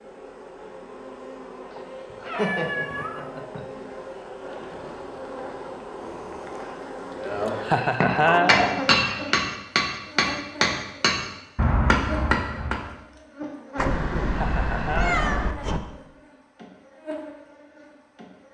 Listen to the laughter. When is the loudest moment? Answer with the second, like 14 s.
8 s.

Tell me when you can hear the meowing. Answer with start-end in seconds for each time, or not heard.
2.1-3.6, 8.1-9.3, 13.8-15.8.